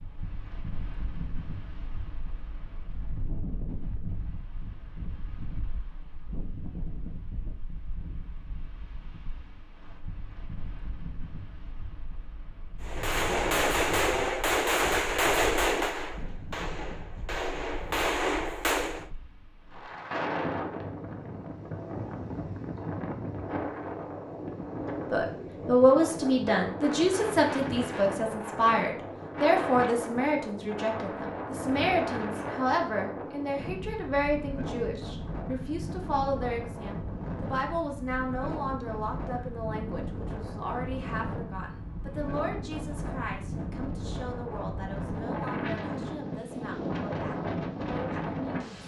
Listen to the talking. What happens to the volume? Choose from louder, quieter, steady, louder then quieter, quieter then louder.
quieter.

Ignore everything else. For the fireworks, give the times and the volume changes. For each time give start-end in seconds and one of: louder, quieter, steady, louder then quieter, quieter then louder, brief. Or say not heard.
12.8-19.1 quieter then louder.